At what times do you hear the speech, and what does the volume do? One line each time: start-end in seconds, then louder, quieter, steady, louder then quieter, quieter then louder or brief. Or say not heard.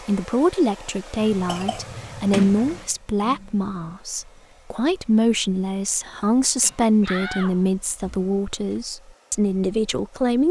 0.1-10.4 steady.